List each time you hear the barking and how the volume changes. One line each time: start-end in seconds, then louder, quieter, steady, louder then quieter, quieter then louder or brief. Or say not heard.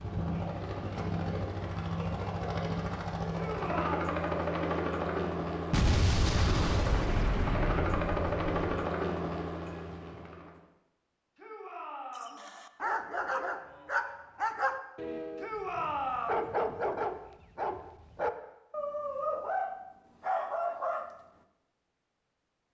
12.2-21.1 steady.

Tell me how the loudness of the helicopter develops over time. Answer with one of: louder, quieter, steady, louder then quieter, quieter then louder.
steady.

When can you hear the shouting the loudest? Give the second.
16 s.